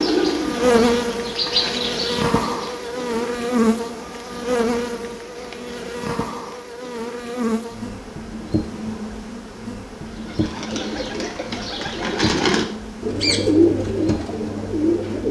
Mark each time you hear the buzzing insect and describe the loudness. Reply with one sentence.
You can hear the buzzing insect from 0.0 to 15.2 s, getting quieter.